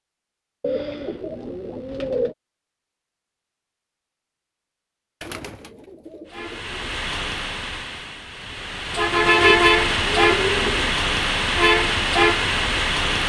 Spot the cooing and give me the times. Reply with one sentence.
You can hear the cooing from 0.6 to 2.4 s, from 5.2 to 6.9 s and from 9.3 to 10.9 s.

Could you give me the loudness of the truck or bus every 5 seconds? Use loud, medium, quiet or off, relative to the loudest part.
off, loud, loud.